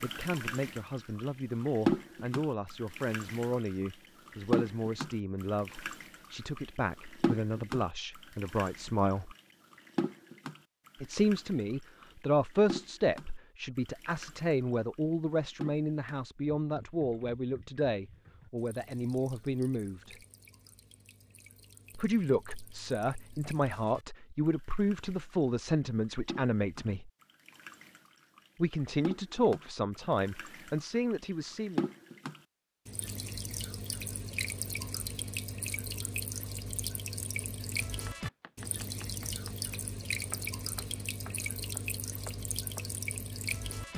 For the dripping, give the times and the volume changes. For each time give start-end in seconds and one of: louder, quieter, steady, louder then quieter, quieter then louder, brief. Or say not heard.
0.0-43.9 quieter then louder.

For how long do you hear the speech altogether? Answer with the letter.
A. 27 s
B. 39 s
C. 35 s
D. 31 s
A.